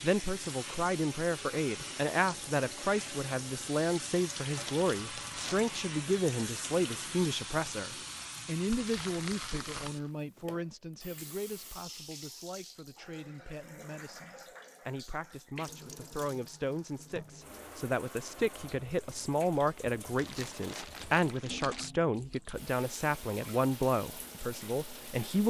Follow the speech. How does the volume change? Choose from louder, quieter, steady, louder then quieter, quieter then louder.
quieter then louder.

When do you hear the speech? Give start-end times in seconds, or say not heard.
0.0-25.4.